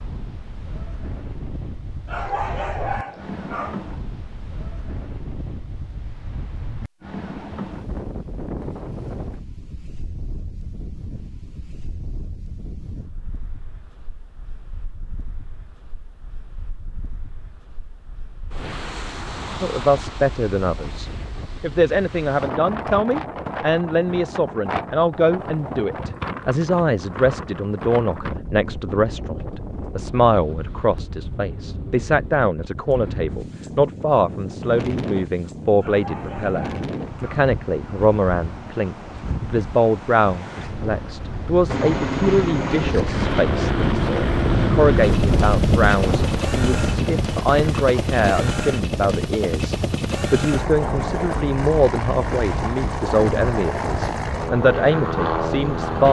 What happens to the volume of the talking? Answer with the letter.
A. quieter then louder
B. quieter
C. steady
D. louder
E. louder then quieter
C.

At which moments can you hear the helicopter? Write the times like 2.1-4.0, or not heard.
41.6-56.0.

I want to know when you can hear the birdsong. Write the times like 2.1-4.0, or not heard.
not heard.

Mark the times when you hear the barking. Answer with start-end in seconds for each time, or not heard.
2.0-3.9, 35.8-37.5.